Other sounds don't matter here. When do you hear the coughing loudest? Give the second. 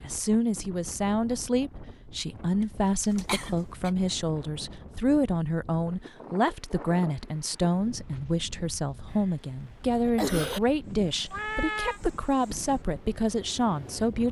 10 s.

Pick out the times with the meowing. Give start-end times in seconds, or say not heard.
11.3-12.0.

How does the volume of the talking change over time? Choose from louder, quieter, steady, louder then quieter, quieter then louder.
steady.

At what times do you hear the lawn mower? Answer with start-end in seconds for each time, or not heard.
not heard.